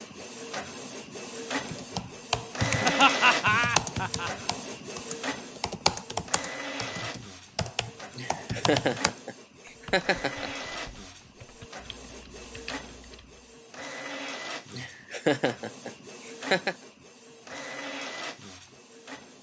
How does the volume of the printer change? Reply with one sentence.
The volume of the printer goes down.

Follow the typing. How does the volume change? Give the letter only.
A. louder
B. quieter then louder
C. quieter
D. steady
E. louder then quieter
C.